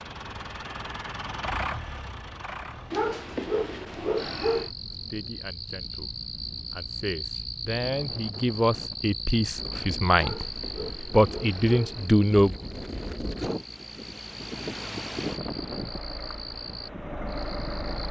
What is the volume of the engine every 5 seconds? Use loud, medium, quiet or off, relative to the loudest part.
loud, off, off, loud.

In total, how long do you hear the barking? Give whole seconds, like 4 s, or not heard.
4 s.